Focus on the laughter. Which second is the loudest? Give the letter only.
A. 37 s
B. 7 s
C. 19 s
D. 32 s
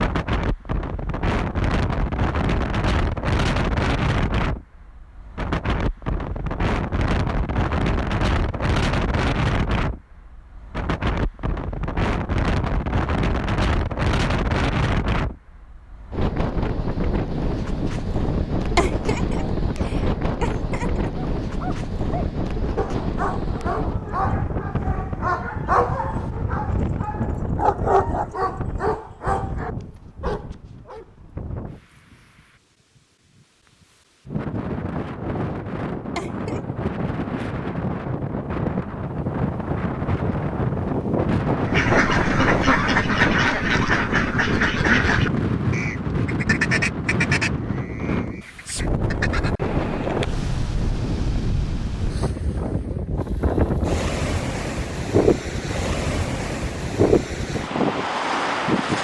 C.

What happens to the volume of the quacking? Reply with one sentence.
The loudness of the quacking goes down.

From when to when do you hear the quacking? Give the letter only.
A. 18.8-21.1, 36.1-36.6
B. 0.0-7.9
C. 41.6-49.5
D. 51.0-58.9
C.